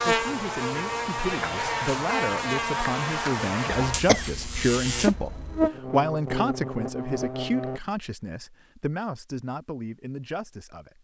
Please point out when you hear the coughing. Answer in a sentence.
You can hear the coughing from 3.6 to 5.7 s.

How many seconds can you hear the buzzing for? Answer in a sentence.
The buzzing can be heard for 8 seconds in total.